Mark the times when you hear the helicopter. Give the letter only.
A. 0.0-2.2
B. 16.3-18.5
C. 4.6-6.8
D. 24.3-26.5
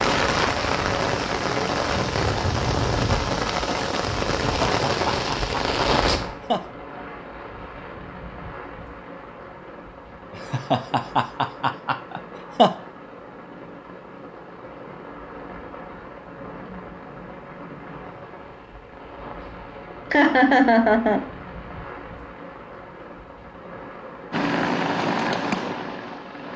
D.